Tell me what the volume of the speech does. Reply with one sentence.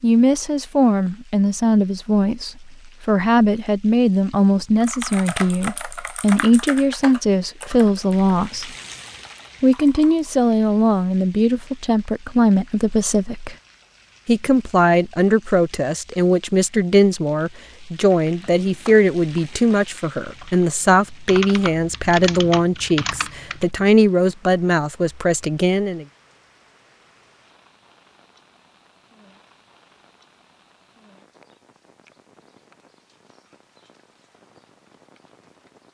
The volume of the speech stays about the same.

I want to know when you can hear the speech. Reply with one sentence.
You can hear the speech from 0.0 to 8.7 s, from 9.6 to 13.6 s and from 14.2 to 26.1 s.